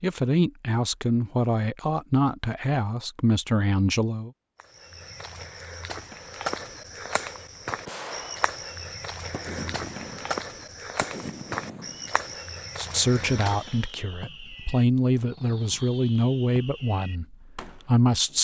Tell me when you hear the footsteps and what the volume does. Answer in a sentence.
The footsteps can be heard from 4.5 to 13.9 s, at a steady volume.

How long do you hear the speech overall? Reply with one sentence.
The speech can be heard for 10 seconds in total.